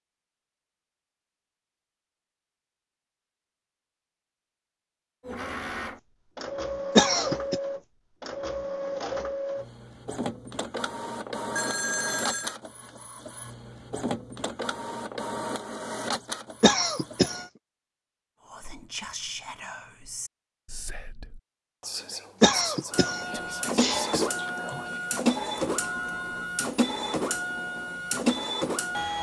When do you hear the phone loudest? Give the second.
12 s.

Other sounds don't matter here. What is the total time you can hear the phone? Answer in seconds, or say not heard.
2 s.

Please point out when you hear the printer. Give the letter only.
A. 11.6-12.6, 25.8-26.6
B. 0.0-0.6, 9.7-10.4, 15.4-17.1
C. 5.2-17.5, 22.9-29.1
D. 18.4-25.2
C.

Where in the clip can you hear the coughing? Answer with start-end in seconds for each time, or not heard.
7.0-7.5, 16.6-17.4, 22.4-24.1.